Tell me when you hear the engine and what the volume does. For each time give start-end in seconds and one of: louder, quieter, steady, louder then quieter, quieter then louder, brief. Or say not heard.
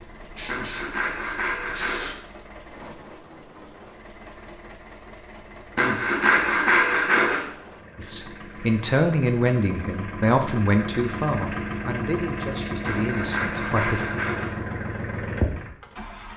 0.0-16.3 louder.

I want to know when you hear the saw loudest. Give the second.
7 s.